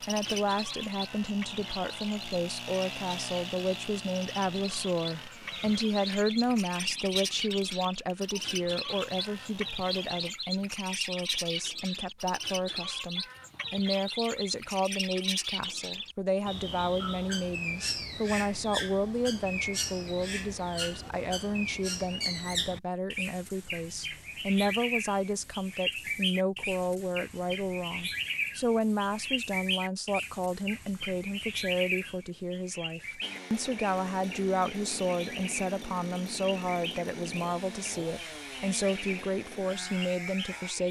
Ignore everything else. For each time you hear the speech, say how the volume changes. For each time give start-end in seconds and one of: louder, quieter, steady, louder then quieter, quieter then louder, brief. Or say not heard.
0.0-40.8 steady.